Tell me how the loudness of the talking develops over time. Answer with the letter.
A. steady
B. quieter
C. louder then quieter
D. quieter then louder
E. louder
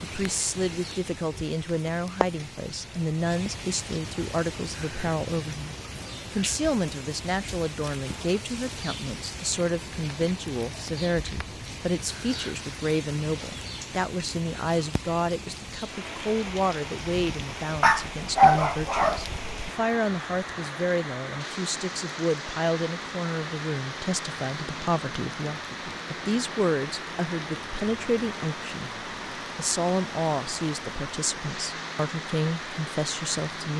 A.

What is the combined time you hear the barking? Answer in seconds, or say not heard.
2 s.